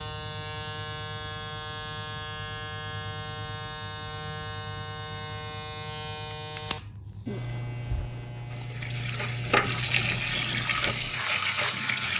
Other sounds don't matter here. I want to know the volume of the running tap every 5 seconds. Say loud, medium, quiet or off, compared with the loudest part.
off, loud, loud.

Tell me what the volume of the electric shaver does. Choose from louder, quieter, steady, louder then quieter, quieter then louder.
steady.